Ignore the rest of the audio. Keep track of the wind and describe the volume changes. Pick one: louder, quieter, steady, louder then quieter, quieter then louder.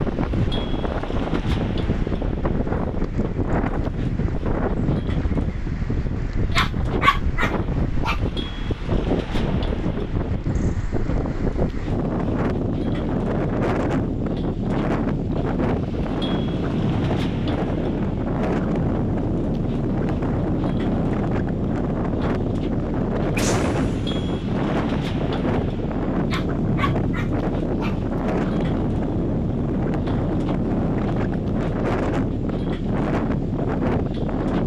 steady.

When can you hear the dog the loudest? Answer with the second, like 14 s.
7 s.